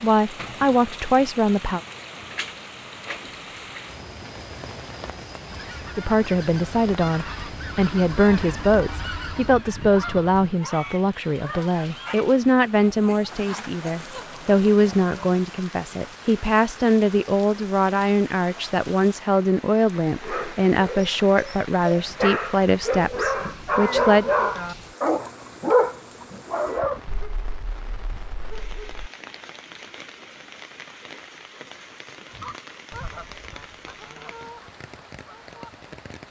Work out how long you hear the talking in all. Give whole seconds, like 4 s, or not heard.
20 s.